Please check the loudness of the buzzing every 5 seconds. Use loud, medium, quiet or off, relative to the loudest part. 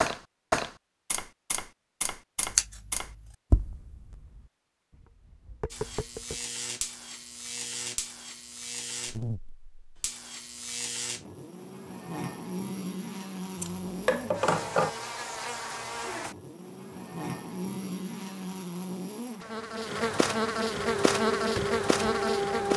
off, medium, medium, medium, loud.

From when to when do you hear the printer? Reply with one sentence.
You can hear the printer from 20.8 to 22.7 s.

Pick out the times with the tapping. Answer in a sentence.
You can hear the tapping from 0.0 to 6.5 s.